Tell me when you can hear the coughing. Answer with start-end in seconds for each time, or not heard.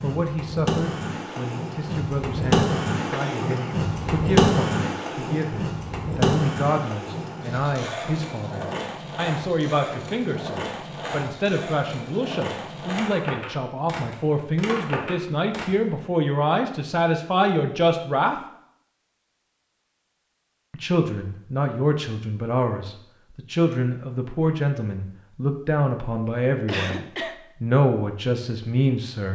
3.1-3.8, 26.6-27.4.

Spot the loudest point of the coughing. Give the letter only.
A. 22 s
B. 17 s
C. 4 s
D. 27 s
D.